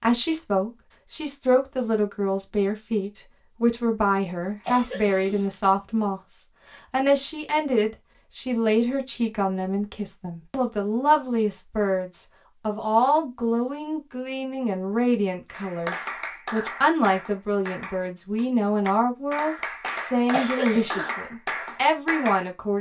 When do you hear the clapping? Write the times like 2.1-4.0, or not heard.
15.5-22.5.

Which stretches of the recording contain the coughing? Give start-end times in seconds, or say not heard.
4.6-5.5, 20.3-21.1.